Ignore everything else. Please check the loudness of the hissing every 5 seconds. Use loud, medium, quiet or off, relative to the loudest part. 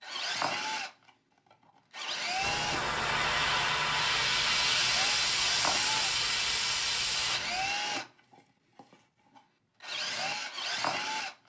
loud, loud, off.